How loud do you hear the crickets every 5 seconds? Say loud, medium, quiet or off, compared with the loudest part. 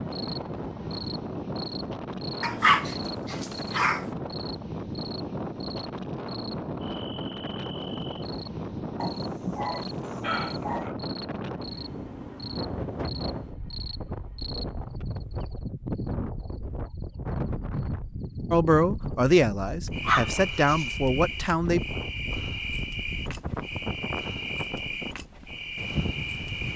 medium, medium, medium, loud, loud, loud.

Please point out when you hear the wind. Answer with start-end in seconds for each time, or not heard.
0.0-26.7.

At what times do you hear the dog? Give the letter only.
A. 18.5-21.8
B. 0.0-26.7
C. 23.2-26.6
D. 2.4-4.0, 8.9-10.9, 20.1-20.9
D.